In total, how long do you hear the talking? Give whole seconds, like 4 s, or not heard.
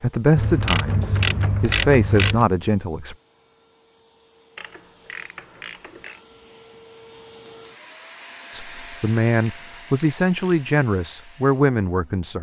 7 s.